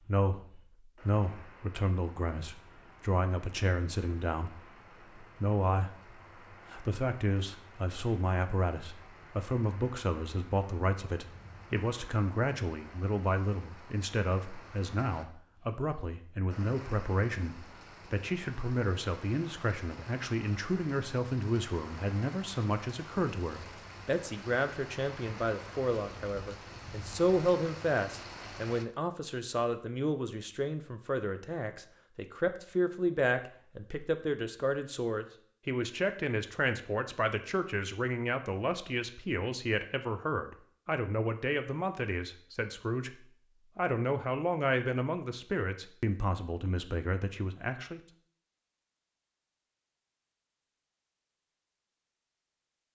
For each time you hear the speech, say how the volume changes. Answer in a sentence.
The speech can be heard from 0.1 to 43.1 s, at a steady volume; and from 43.8 to 48.0 s, getting quieter.